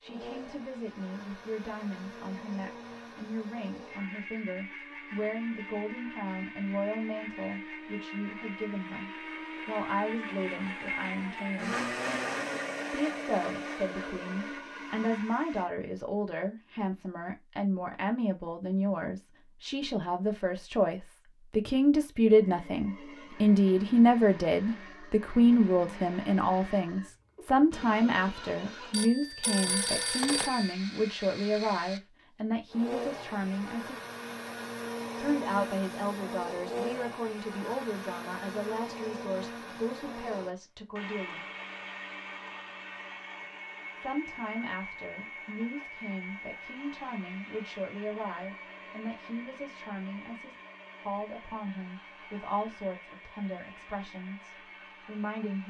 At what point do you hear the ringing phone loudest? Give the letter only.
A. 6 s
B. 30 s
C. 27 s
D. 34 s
B.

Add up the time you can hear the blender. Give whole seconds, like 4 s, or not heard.
49 s.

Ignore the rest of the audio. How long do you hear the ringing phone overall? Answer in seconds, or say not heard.
2 s.